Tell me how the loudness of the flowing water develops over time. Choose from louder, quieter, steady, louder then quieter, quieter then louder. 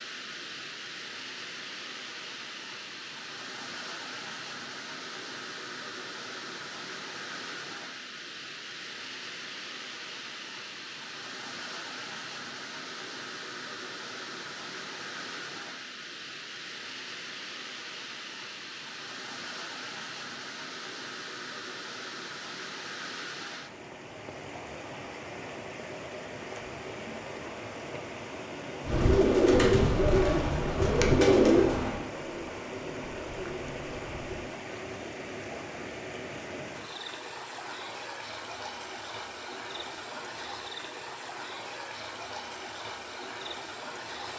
steady.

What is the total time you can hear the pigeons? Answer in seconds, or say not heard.
6 s.